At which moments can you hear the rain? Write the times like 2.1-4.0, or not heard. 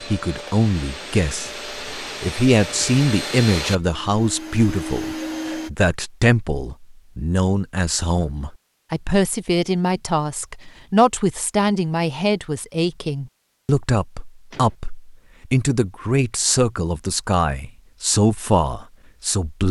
not heard.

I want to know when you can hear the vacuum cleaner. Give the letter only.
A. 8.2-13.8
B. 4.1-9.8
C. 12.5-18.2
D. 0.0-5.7
D.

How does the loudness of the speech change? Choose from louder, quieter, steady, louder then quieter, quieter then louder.
steady.